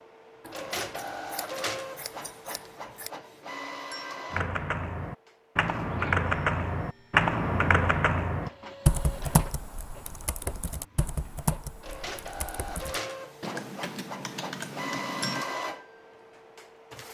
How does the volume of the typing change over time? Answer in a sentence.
The volume of the typing goes down.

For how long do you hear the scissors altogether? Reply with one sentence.
The scissors can be heard for 3 seconds in total.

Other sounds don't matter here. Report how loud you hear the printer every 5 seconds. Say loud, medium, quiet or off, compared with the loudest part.
loud, medium, loud, loud.